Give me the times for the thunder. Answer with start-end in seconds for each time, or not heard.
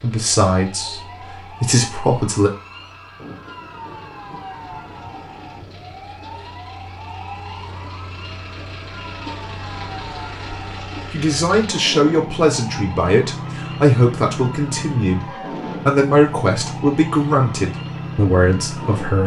3.1-6.0.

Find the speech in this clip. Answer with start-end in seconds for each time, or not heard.
0.0-2.5, 11.1-19.2.